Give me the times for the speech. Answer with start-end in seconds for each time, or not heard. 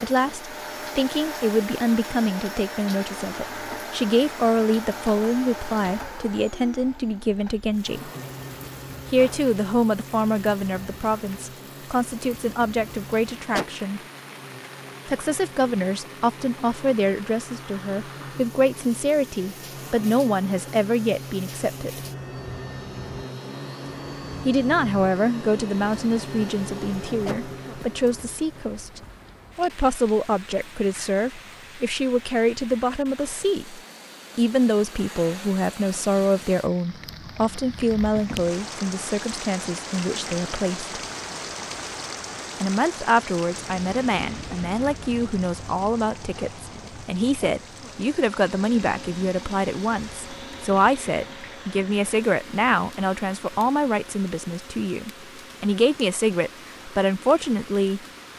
0.0-8.1, 9.1-14.0, 15.1-22.0, 24.4-40.9, 42.6-58.0.